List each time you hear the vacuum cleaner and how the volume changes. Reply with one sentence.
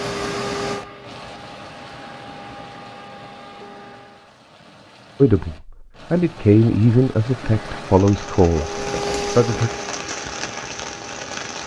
You can hear the vacuum cleaner from 0.0 to 4.4 s, getting quieter; and from 7.2 to 11.6 s, getting louder then quieter.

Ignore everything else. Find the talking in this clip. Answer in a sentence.
The talking can be heard from 5.2 to 9.7 s.